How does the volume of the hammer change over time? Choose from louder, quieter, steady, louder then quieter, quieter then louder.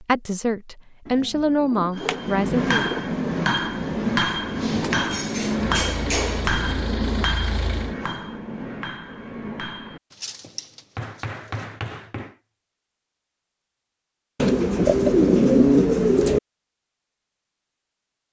quieter.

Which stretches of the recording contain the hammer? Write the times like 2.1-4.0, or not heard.
1.9-12.3.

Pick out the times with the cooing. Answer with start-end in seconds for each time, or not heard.
1.1-3.0, 4.7-6.5, 10.1-11.7, 14.3-16.4.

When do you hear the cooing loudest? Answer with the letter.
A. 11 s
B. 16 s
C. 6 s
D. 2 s
B.